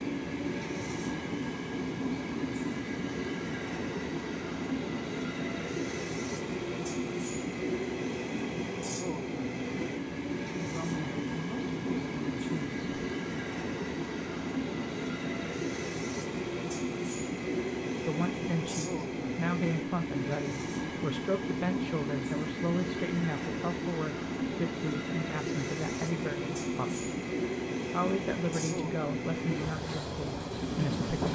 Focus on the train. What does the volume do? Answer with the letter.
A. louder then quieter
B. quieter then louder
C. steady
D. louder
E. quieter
C.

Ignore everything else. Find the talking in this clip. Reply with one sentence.
You can hear the talking from 10.6 to 12.8 s, from 18.1 to 27.1 s and from 27.9 to 31.3 s.